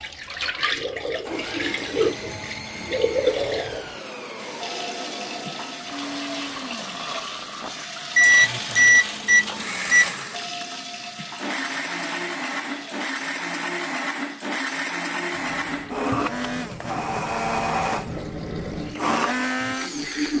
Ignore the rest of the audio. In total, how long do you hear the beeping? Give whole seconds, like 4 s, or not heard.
2 s.